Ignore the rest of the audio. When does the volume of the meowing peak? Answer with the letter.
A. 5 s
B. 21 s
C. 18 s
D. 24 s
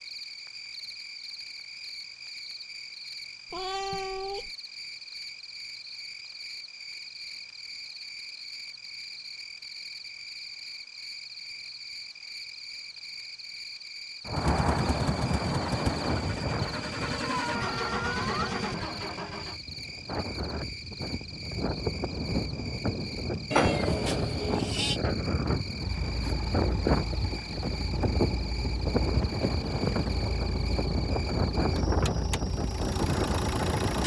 D.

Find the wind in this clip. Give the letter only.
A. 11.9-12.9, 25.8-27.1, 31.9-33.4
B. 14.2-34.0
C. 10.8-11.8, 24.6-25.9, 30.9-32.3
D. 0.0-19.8
B.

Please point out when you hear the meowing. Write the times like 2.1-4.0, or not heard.
3.5-4.5, 17.3-18.6, 23.5-24.9.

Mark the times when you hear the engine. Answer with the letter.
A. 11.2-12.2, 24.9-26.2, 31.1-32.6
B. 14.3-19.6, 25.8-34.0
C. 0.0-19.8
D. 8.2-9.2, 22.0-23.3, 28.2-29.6
B.